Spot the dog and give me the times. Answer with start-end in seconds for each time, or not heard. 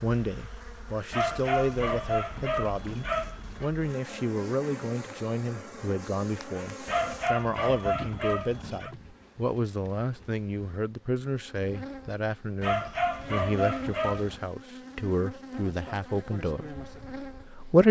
1.1-3.7, 6.8-8.9, 12.6-14.4.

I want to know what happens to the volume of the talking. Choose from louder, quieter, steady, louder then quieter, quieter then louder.
steady.